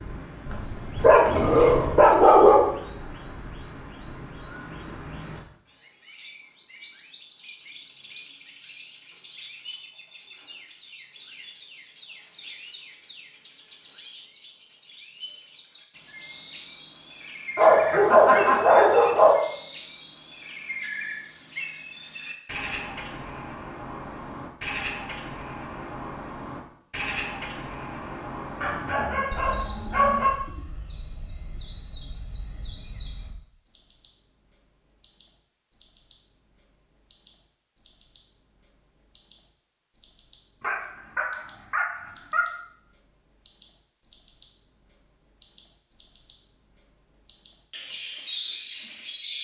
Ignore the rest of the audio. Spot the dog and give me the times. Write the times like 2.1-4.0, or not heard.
0.5-2.7, 17.6-19.4, 28.6-30.4, 40.6-42.5.